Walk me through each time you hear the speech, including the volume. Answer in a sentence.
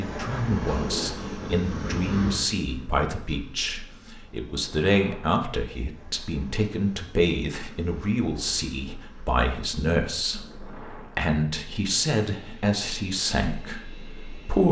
You can hear the speech from 0.0 to 14.6 s, at a steady volume.